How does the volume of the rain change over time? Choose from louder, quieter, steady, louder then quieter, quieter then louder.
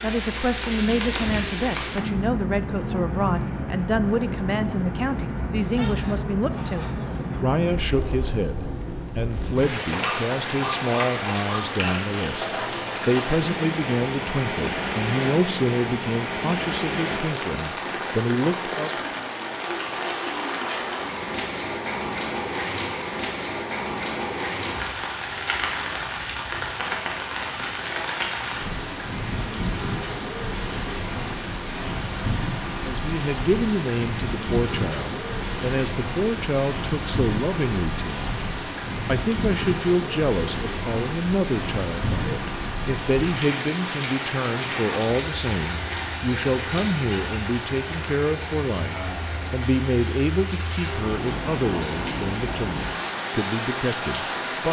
steady.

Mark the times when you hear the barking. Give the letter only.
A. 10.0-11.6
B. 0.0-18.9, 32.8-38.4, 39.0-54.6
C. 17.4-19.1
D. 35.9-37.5
A.